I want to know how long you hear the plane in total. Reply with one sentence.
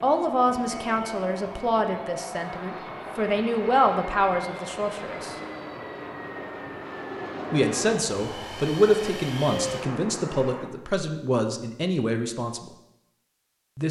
The plane can be heard for 11 seconds in total.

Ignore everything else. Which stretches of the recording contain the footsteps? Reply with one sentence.
The footsteps can't be heard in this clip.